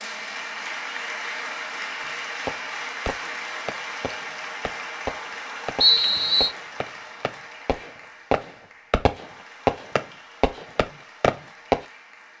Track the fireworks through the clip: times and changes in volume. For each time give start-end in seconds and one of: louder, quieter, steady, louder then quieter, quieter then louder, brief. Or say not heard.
2.0-11.8 louder.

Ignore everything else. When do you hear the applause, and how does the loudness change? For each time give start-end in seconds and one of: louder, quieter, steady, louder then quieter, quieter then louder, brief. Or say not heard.
0.0-12.3 quieter.